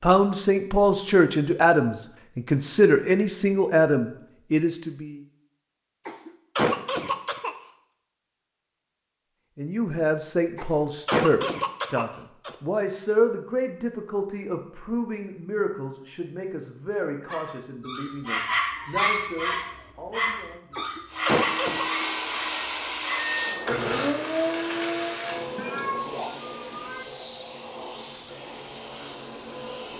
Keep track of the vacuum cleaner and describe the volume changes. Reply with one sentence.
The volume of the vacuum cleaner goes down.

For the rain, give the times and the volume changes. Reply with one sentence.
You can't hear the rain here.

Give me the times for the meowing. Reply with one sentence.
The meowing can be heard from 25.6 to 27.1 s.